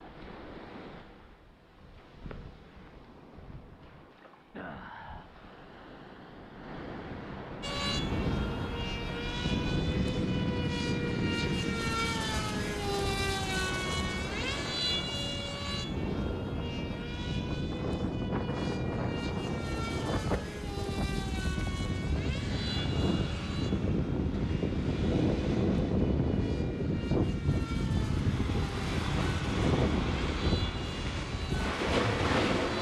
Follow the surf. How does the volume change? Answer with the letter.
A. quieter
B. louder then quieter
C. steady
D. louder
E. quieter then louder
D.